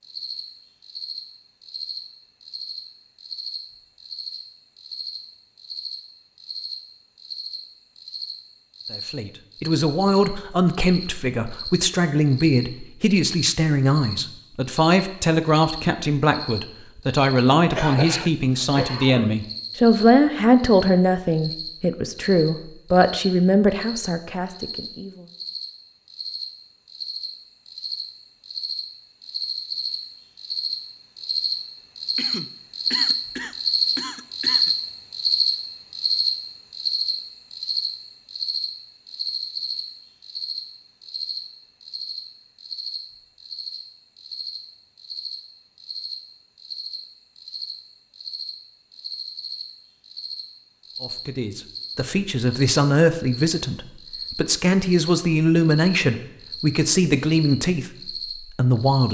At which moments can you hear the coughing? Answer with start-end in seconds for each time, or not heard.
17.5-19.3, 32.1-34.8.